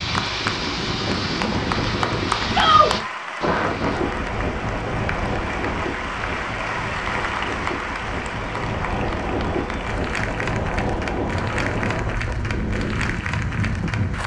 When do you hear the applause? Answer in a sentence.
The applause can be heard from 0.0 to 14.2 s.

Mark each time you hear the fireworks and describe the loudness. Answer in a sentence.
You can't hear the fireworks here.